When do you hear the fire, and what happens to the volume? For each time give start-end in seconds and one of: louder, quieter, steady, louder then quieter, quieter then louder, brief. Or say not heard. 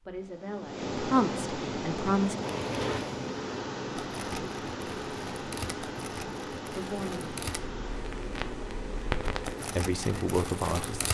2.3-11.0 quieter then louder.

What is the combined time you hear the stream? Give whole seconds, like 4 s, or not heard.
11 s.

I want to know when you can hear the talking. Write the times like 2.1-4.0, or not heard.
0.1-2.4, 6.7-7.3, 9.7-11.0.